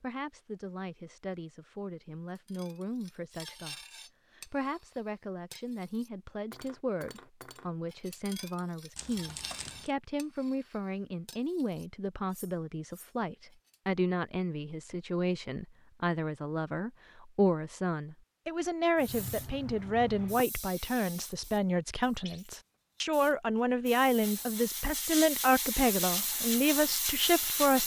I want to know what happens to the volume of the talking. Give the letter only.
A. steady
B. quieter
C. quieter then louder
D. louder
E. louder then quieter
D.